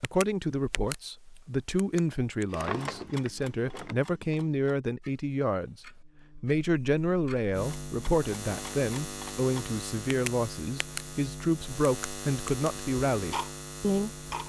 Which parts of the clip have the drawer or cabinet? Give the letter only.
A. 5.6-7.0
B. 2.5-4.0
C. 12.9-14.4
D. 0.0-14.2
B.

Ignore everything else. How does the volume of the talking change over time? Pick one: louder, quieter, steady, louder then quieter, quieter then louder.
steady.